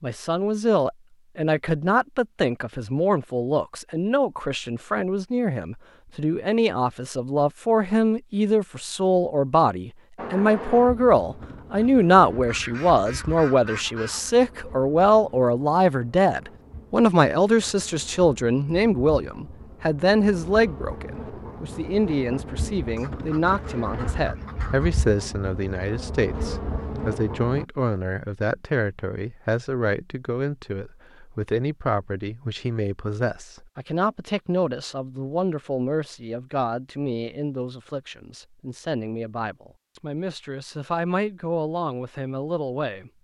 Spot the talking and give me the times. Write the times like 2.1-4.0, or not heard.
0.0-43.1.